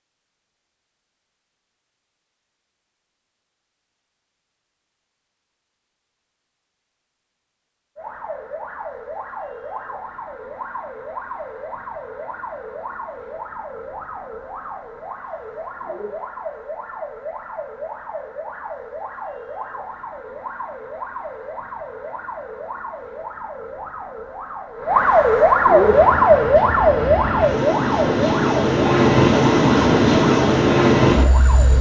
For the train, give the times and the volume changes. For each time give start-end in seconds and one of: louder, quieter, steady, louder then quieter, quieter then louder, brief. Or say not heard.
25.7-31.7 louder.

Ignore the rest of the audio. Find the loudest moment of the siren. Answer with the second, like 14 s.
26 s.